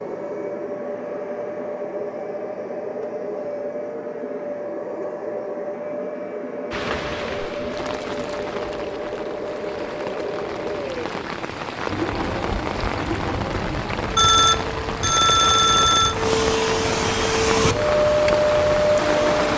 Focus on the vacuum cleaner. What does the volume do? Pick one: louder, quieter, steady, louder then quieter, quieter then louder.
louder.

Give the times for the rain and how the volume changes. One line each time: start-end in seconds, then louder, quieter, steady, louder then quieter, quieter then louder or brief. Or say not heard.
6.7-19.5 louder.